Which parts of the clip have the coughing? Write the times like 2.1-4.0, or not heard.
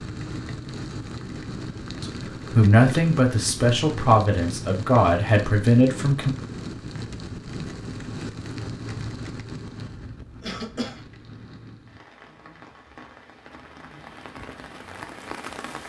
10.4-11.1.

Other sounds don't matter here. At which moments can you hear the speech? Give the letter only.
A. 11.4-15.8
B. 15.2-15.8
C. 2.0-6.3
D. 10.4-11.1
C.